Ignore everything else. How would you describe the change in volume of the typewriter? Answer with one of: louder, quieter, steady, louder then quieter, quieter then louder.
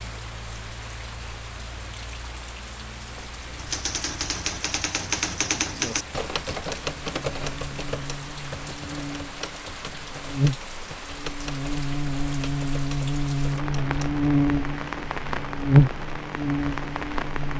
quieter.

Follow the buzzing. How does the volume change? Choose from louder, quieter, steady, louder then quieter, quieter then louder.
louder.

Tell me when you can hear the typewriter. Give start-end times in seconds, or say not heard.
3.1-14.1.